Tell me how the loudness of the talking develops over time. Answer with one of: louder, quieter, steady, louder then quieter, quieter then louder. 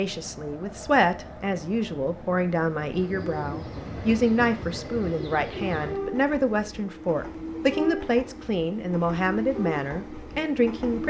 steady.